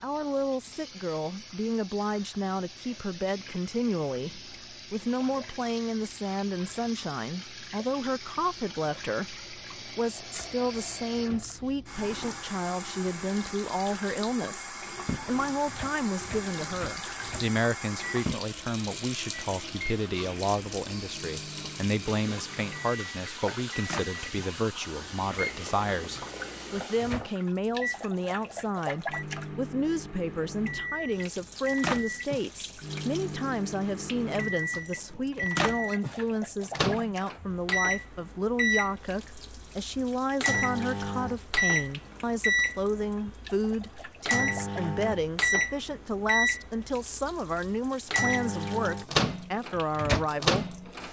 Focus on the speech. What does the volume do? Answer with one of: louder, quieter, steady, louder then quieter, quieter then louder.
steady.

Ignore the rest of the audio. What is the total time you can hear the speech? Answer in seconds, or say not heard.
51 s.